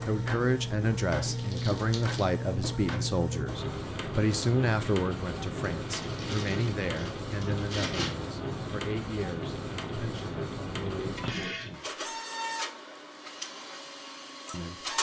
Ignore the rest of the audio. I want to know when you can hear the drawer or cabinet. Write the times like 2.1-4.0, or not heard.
not heard.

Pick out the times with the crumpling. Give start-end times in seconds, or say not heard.
1.2-2.2, 5.8-8.2, 11.1-11.6.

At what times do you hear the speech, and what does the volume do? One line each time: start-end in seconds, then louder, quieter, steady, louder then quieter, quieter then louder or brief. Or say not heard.
0.1-12.0 quieter
14.5-14.9 brief.